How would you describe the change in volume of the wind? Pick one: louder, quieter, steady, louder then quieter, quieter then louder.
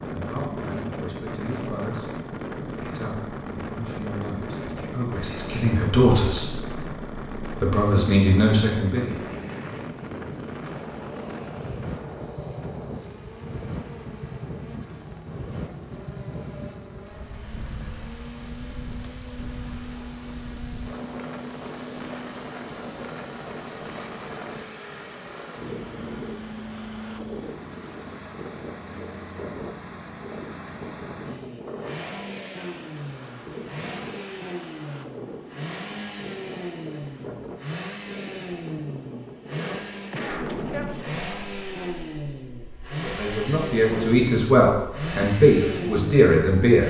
quieter.